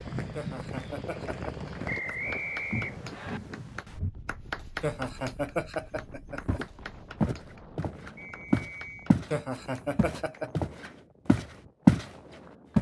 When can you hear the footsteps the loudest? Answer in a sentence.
The volume of the footsteps peaks at 12 seconds.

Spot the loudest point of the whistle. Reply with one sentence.
The loudest moment of the whistle is at 2 seconds.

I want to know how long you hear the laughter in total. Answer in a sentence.
The laughter can be heard for 5 seconds in total.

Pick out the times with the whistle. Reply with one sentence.
You can hear the whistle from 1.9 to 3.4 s and from 8.2 to 9.1 s.